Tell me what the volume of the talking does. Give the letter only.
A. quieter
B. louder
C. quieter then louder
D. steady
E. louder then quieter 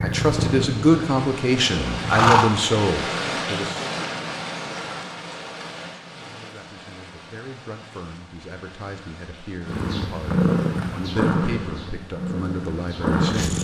C.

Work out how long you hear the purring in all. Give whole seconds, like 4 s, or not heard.
6 s.